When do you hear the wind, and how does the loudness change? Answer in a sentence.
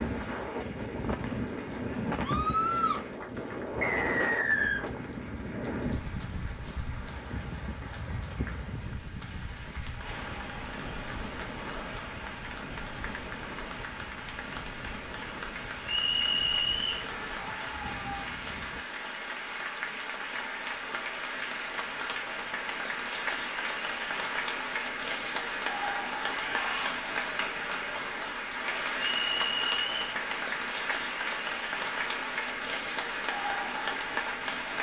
The wind can be heard from 0.0 to 18.9 s, getting quieter.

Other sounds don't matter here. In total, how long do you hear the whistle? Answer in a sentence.
The whistle can be heard for 3 seconds in total.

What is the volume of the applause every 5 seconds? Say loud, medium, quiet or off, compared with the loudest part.
quiet, quiet, medium, medium, loud, loud, loud.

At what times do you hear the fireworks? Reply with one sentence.
You can't hear the fireworks here.